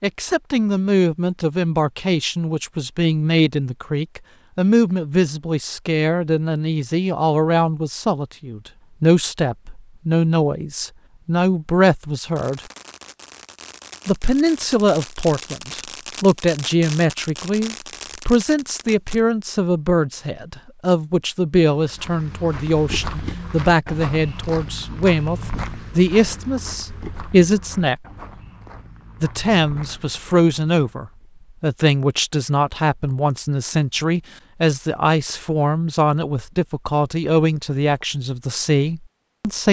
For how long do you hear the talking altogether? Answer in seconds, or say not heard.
37 s.